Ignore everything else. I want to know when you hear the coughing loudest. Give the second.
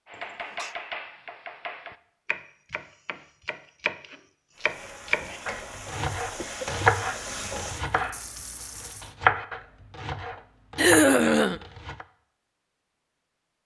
11 s.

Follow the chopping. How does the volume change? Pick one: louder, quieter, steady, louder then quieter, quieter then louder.
louder then quieter.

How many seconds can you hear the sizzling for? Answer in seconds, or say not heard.
5 s.